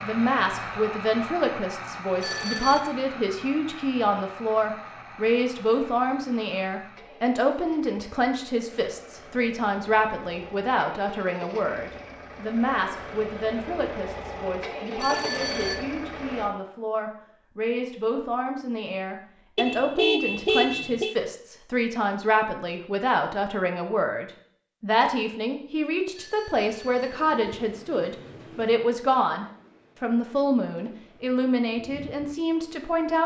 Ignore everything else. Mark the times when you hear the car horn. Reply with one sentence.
The car horn can be heard from 19.6 to 21.1 s.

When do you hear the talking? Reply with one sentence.
You can hear the talking from 0.0 to 33.2 s.